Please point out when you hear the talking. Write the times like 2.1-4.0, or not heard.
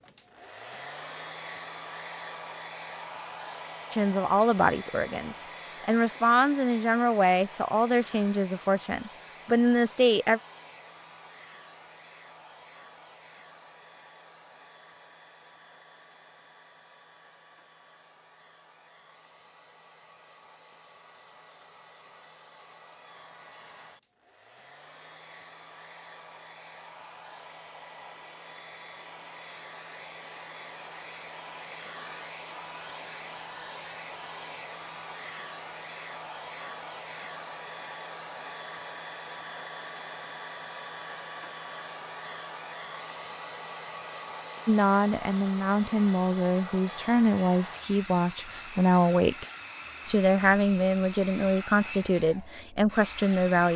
3.9-10.4, 44.6-53.7.